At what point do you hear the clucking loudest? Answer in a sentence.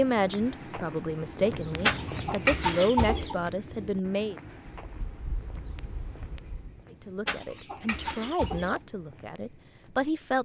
The loudest moment of the clucking is at 3 seconds.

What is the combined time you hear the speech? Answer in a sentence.
You can hear the speech for 8 seconds altogether.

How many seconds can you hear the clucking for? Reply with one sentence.
You can hear the clucking for 3 seconds altogether.